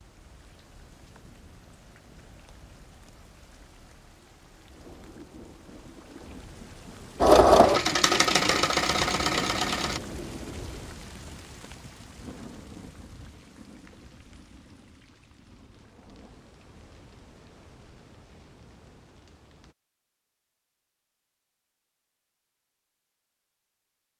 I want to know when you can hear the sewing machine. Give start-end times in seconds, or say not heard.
7.2-10.0.